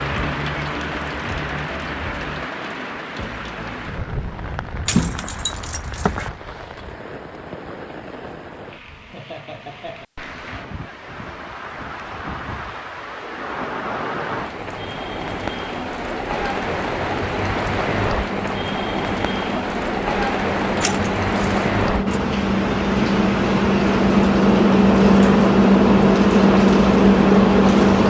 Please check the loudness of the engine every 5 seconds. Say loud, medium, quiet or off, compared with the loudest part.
off, off, off, quiet, medium, loud.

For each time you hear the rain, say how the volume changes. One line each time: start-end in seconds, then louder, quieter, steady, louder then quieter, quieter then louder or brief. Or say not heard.
0.0-28.0 quieter then louder.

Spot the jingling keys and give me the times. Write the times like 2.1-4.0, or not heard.
4.8-6.3, 20.6-22.2.